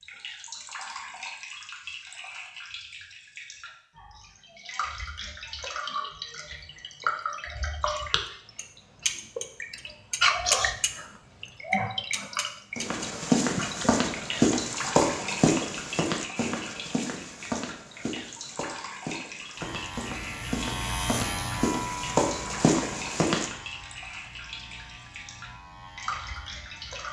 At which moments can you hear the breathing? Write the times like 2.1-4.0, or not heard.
not heard.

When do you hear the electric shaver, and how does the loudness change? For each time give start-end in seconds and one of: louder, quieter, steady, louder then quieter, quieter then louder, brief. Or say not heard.
19.6-27.0 quieter.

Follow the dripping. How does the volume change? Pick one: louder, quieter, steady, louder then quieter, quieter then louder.
louder then quieter.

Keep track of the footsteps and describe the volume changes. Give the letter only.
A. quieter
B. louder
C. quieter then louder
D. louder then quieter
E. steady
C.